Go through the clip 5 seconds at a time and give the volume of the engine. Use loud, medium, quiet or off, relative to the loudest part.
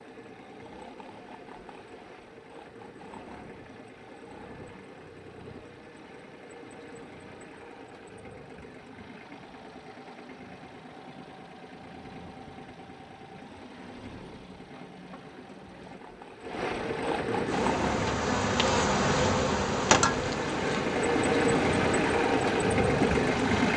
quiet, quiet, quiet, medium, loud.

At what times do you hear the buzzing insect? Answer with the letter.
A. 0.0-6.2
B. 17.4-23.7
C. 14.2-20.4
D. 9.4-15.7
B.